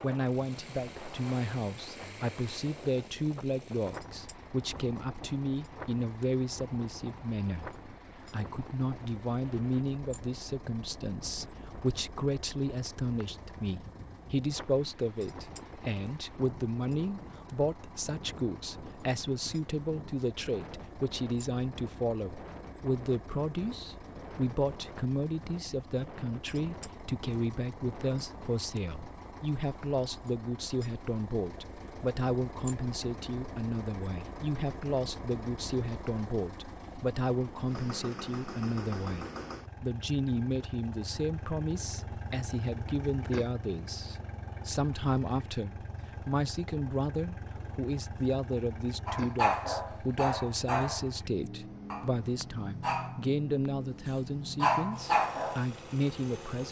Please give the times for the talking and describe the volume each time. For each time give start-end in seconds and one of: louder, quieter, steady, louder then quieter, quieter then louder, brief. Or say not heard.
0.0-56.6 steady.